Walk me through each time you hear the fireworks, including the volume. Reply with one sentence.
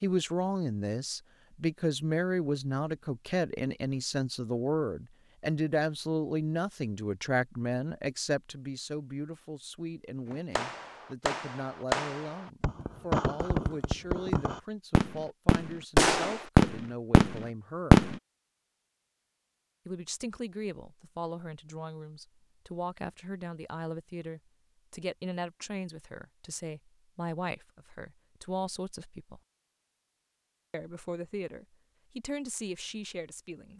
You can hear the fireworks from 10.2 to 18.1 s, getting louder.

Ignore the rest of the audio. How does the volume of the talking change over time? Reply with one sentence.
The loudness of the talking goes down.